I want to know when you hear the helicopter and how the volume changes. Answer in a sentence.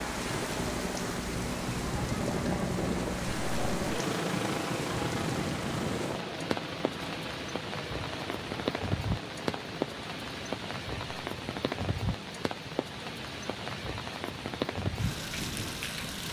The helicopter can be heard from 0.0 to 16.2 s, getting quieter.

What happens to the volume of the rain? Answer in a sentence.
The volume of the rain stays about the same.